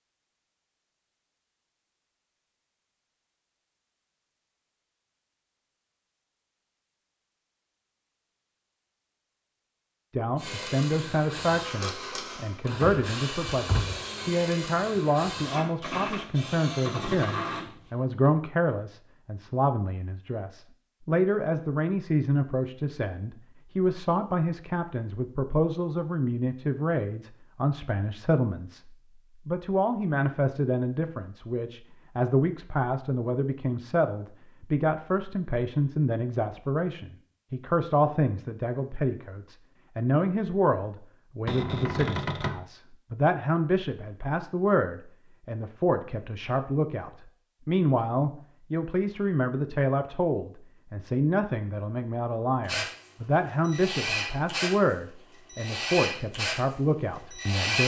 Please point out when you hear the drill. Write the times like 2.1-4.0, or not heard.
10.3-18.3, 52.6-57.8.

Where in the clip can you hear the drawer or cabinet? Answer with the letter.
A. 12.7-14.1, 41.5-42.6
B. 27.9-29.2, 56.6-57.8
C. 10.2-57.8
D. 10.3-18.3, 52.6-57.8
A.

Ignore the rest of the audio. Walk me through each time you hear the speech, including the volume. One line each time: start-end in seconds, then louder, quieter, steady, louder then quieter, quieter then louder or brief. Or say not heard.
10.2-57.8 steady.